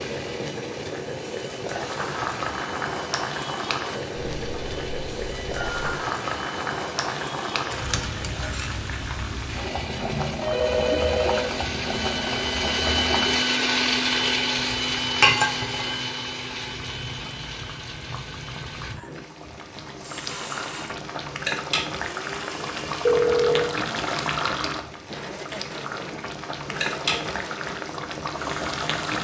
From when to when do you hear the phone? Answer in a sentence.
The phone can be heard from 4.3 to 6.0 s, from 9.9 to 11.6 s and from 23.1 to 23.8 s.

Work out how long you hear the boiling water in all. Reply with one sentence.
You can hear the boiling water for 29 seconds altogether.